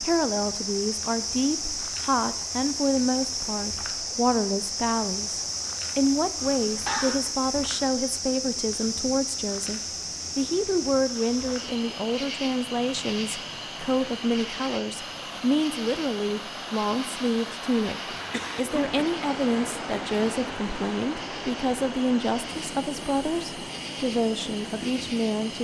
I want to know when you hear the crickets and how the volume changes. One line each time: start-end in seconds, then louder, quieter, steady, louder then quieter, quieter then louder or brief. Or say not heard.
0.0-25.6 quieter.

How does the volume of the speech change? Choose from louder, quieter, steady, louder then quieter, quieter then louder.
steady.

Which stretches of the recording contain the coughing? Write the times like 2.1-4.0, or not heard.
6.4-7.2, 18.1-19.0.